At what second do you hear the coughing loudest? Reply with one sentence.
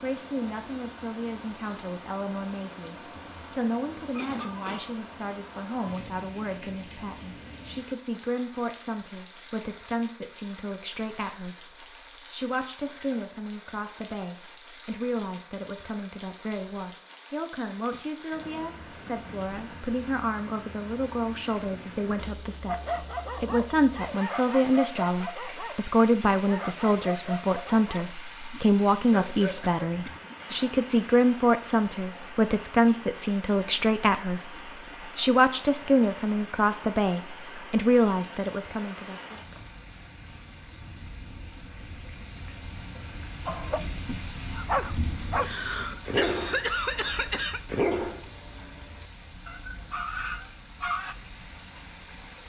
The loudest moment of the coughing is at 47 seconds.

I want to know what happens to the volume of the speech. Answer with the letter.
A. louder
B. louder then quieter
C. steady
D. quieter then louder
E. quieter
A.